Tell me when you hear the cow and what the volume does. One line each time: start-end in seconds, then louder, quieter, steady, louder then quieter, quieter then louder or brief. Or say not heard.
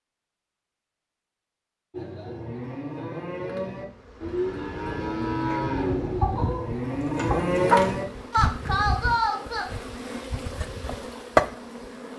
1.9-9.7 louder.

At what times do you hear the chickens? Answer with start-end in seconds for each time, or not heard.
5.5-8.0.